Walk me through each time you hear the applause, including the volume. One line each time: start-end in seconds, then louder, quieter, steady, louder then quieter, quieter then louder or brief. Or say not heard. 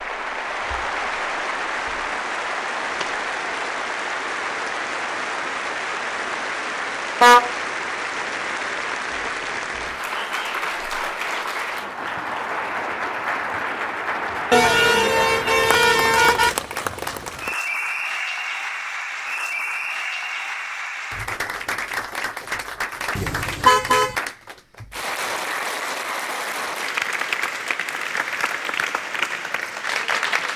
0.0-30.5 steady.